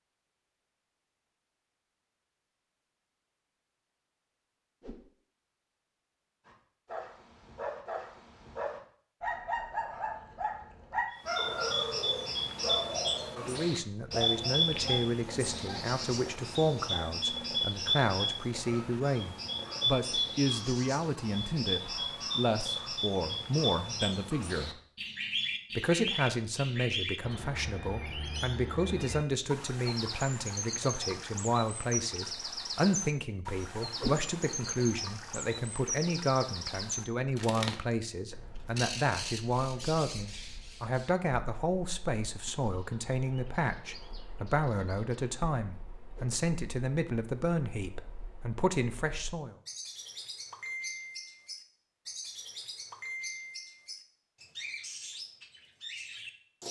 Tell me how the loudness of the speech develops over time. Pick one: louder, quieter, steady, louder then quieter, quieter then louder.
steady.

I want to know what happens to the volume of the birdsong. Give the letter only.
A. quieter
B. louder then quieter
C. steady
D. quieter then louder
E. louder
A.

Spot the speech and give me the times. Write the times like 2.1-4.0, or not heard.
13.3-24.7, 25.8-49.5.